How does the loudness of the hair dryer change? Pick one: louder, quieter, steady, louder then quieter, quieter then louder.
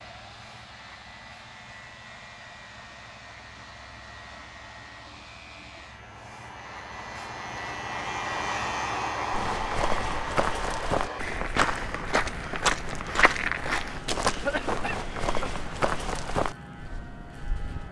louder.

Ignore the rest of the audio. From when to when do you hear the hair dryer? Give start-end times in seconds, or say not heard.
0.0-11.2.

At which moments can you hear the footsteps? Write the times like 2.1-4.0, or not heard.
9.3-17.8.